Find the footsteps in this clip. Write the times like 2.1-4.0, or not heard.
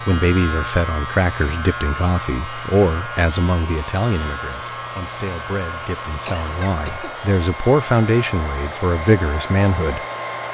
not heard.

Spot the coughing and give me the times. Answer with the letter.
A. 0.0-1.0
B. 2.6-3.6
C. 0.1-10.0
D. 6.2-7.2
D.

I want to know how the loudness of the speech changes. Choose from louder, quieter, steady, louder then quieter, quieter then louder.
quieter then louder.